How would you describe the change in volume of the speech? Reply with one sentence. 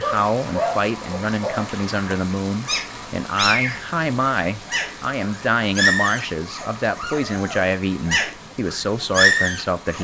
The volume of the speech stays about the same.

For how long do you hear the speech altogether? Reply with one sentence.
The speech can be heard for 10 seconds in total.